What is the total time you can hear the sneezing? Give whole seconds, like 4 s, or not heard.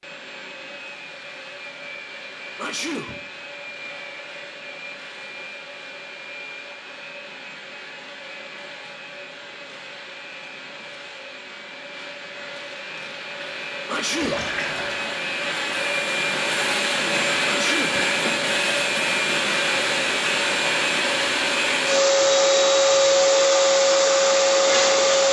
2 s.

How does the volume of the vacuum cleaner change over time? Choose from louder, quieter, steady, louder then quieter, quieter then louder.
louder.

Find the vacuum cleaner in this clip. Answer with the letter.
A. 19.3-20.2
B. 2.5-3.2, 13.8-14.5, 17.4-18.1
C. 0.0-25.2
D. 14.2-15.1
C.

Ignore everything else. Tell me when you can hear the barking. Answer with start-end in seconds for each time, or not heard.
not heard.